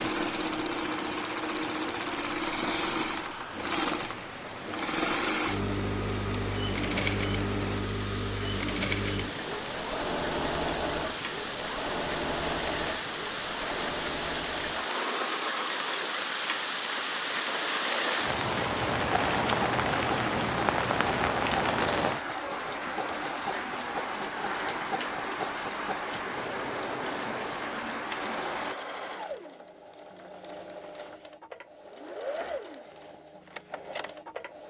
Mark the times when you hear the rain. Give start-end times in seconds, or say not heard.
0.2-28.8.